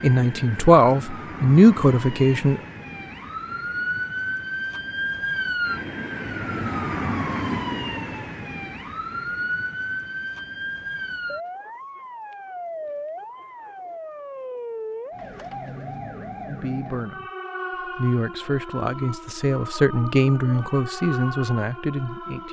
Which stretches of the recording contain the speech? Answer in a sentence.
You can hear the speech from 0.0 to 2.6 s, from 16.4 to 17.2 s and from 17.9 to 22.4 s.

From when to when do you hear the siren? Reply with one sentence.
The siren can be heard from 0.0 to 22.4 s.